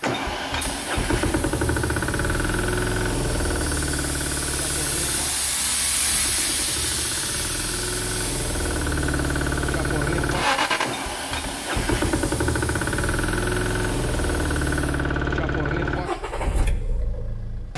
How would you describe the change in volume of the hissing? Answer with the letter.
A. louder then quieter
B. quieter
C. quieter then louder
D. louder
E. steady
A.